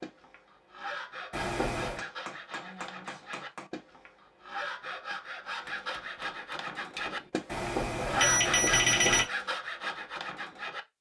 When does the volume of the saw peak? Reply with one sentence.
The loudest moment of the saw is at 8 seconds.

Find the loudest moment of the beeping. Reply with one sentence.
The volume of the beeping peaks at 9 seconds.